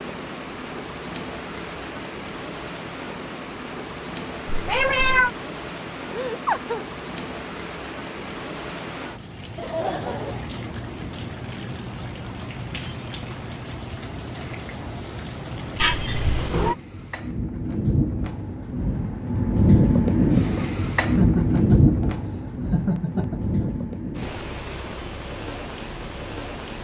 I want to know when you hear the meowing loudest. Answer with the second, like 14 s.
5 s.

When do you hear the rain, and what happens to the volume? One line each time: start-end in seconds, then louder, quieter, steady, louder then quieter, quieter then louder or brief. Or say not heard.
0.0-26.7 louder.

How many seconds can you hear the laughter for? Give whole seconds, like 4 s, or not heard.
4 s.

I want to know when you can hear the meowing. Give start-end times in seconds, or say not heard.
4.5-5.3, 15.8-16.8.